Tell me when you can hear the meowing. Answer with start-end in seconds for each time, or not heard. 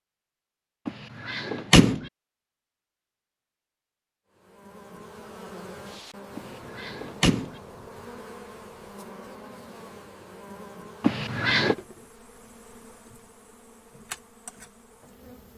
not heard.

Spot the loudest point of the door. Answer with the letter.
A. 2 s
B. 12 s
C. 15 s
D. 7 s
A.